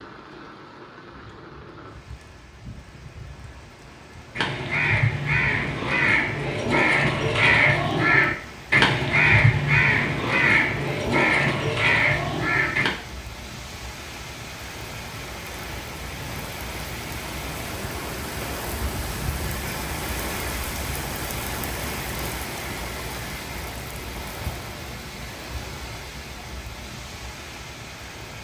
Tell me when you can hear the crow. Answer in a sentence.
You can hear the crow from 4.3 to 12.9 s.